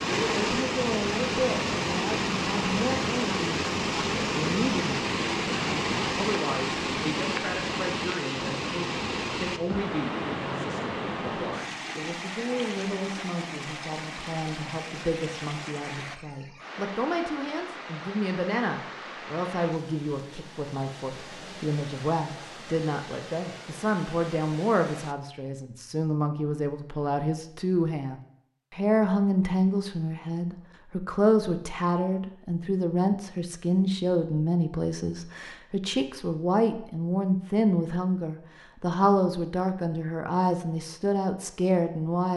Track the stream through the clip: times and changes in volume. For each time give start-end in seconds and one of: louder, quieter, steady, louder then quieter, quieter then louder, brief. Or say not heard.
0.0-25.1 quieter.